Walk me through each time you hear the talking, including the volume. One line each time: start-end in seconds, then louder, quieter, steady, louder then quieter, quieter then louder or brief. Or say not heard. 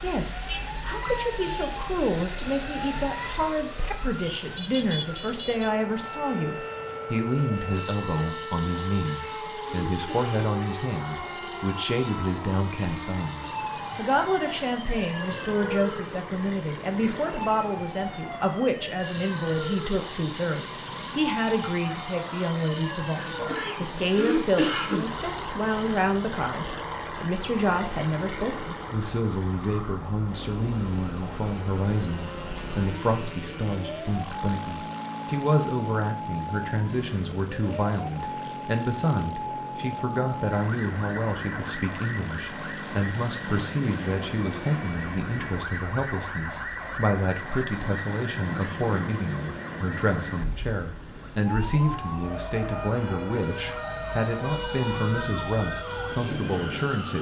0.0-57.1 steady.